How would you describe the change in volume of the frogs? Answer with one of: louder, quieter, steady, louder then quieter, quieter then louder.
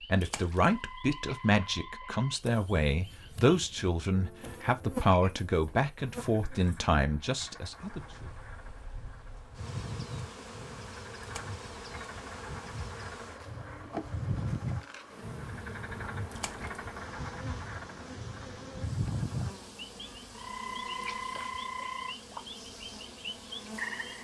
louder.